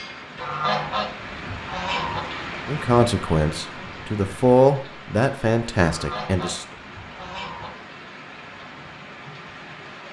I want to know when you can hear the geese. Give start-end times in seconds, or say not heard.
0.3-2.2, 5.8-7.7.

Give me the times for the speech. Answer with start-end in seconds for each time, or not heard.
2.6-6.7.